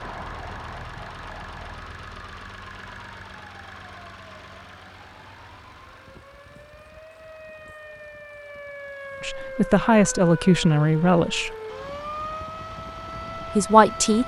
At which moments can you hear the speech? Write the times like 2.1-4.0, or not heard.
9.2-11.5, 13.6-14.2.